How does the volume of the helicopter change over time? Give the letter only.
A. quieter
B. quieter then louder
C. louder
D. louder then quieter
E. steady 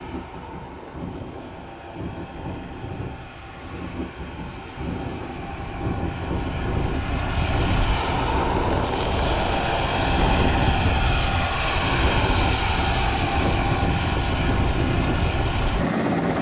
C.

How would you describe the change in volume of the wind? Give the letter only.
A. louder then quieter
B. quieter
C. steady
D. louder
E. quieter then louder
D.